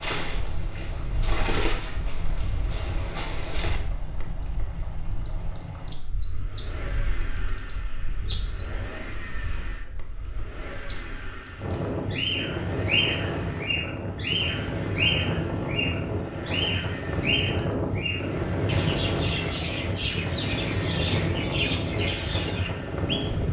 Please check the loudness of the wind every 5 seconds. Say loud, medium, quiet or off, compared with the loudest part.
quiet, quiet, loud, loud, loud.